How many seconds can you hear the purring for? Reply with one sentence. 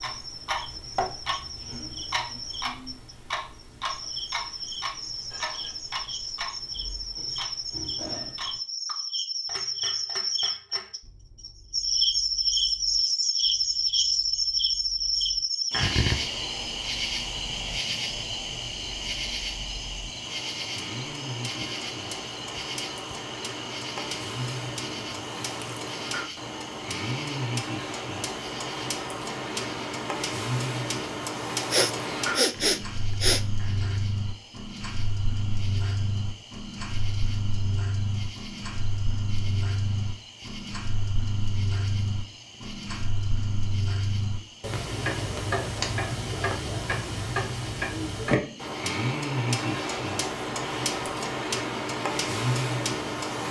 You can't hear the purring here.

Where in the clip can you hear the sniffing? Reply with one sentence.
You can hear the sniffing from 31.2 to 33.5 s.